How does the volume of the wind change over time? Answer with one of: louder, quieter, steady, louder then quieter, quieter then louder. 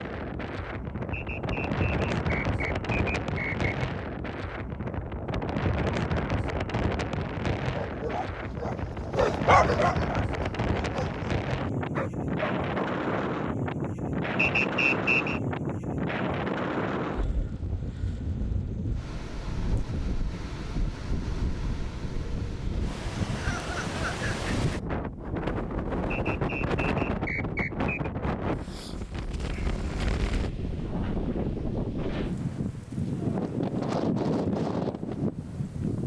steady.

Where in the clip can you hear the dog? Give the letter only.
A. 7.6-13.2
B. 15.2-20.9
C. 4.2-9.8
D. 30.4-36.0
A.